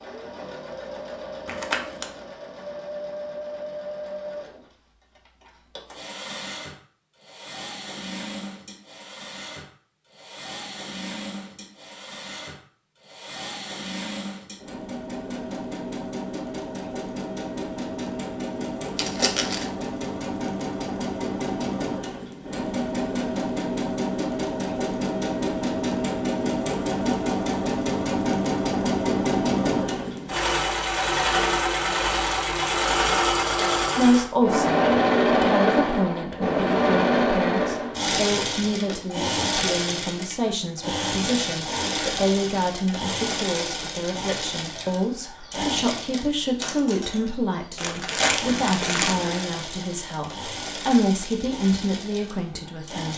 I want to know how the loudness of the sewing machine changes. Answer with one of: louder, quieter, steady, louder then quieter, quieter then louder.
louder then quieter.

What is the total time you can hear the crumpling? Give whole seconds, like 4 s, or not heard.
3 s.